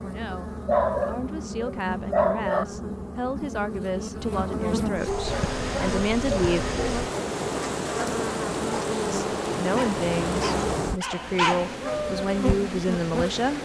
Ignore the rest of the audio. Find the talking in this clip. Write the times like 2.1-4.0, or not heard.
0.0-6.7, 9.1-13.5.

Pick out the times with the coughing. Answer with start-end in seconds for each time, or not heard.
not heard.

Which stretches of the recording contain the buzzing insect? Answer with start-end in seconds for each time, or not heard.
0.0-13.5.